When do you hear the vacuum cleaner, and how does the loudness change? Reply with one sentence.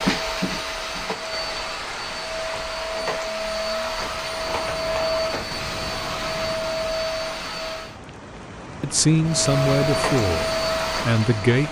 You can hear the vacuum cleaner from 0.0 to 8.0 s, at a steady volume; and briefly from 9.2 to 11.6 s.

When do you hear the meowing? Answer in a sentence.
You can't hear the meowing here.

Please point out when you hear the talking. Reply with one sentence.
You can hear the talking from 8.8 to 11.6 s.